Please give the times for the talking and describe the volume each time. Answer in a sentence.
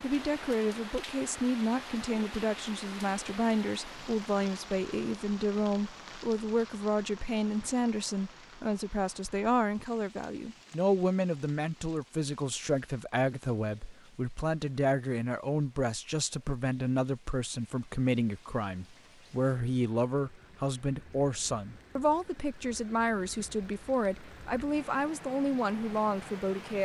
The talking can be heard from 0.0 to 26.7 s, at a steady volume.